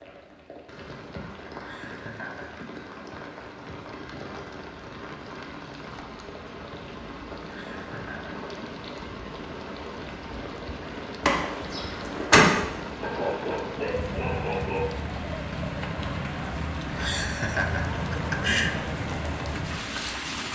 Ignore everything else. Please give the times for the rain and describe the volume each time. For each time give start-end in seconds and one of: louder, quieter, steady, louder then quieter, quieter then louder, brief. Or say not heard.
0.0-20.5 louder.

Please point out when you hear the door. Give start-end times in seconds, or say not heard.
11.2-12.5.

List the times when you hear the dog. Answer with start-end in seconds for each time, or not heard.
13.0-14.9.